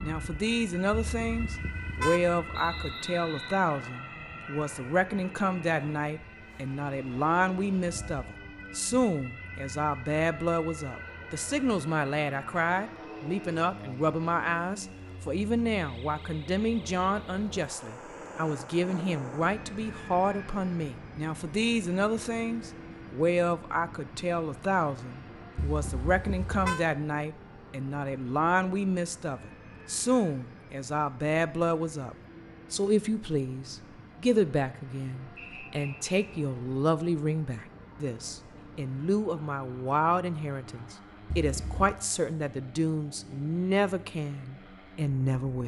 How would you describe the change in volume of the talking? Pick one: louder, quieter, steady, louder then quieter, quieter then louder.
steady.